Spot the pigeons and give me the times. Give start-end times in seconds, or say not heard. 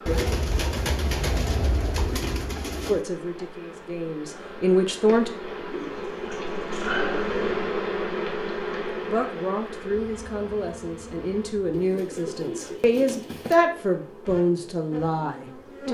0.1-3.0, 5.7-7.7, 11.7-13.6.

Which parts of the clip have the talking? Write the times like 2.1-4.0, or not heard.
2.9-5.3, 9.0-15.8.